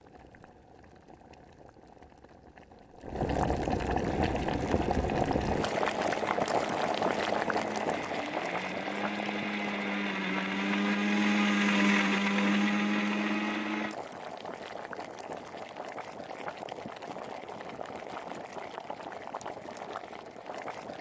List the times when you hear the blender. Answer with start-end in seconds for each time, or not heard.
4.0-13.9.